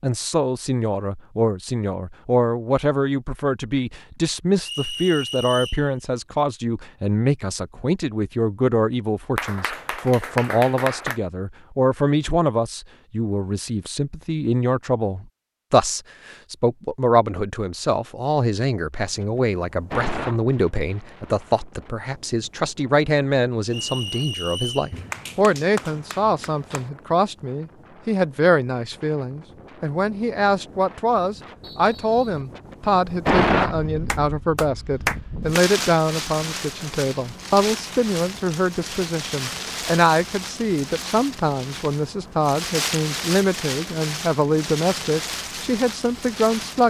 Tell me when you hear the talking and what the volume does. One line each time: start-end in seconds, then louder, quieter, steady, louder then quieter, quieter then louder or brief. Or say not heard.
0.0-46.8 steady.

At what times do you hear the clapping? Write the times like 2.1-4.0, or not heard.
9.3-11.2, 24.9-26.9, 34.0-35.6.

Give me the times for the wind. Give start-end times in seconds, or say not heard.
19.0-46.8.